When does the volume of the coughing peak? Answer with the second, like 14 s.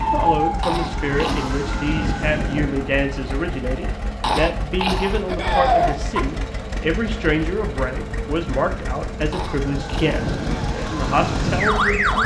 6 s.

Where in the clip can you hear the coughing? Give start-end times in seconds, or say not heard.
0.6-1.6, 4.2-6.2, 9.3-10.7.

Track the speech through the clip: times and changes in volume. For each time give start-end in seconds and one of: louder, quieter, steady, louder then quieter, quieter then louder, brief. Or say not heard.
0.0-12.2 steady.